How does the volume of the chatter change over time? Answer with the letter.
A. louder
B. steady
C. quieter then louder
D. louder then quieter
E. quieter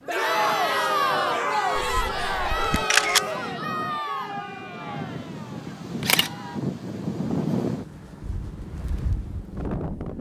E.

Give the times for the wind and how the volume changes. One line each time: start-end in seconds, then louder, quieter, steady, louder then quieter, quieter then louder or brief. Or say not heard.
0.0-10.1 louder then quieter.